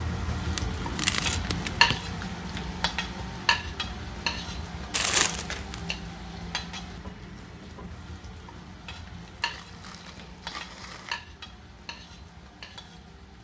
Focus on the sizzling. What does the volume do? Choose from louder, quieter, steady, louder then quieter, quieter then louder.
quieter.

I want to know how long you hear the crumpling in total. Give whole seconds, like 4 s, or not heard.
4 s.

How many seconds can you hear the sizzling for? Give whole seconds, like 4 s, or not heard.
13 s.